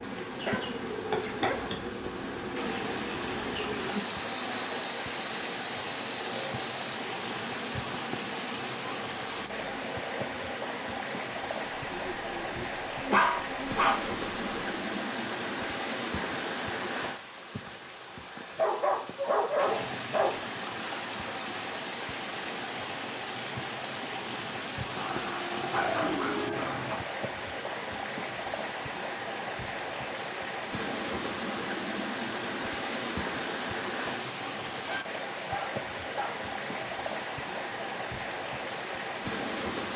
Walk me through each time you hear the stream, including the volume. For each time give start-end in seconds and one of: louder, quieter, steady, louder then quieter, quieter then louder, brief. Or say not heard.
0.0-39.9 steady.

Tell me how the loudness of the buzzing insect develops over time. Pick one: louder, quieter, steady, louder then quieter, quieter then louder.
quieter.